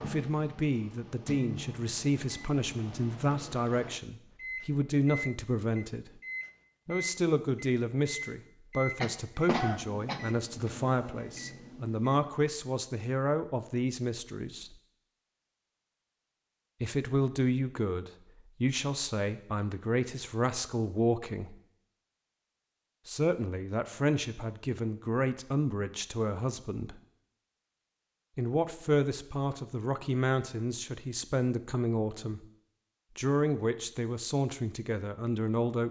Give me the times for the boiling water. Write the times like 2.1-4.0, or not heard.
not heard.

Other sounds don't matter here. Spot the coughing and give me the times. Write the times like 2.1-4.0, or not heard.
9.0-10.2.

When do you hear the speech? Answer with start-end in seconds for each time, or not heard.
0.0-6.2, 6.8-14.8, 16.8-21.6, 23.1-26.9, 28.4-32.5, 33.1-35.8.